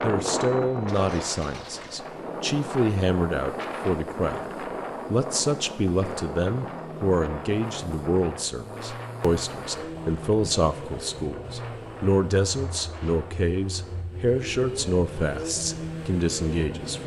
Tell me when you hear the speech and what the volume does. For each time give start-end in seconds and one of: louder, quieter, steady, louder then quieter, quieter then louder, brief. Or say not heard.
0.0-17.0 steady.